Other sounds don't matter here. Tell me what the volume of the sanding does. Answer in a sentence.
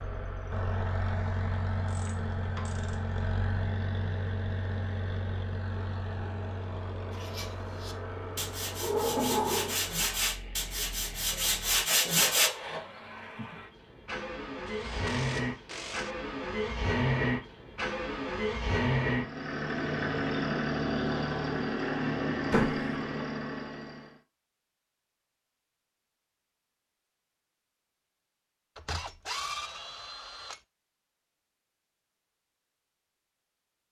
The loudness of the sanding goes up.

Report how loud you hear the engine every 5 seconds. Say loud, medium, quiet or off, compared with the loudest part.
medium, medium, medium, loud, loud, off, off.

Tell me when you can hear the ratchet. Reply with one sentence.
The ratchet can be heard from 1.9 to 3.1 s, from 14.7 to 16.1 s and from 28.8 to 30.6 s.